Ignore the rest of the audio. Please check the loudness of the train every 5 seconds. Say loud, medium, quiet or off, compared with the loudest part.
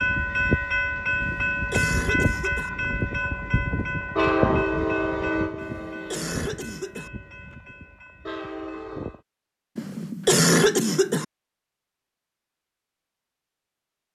loud, medium, off.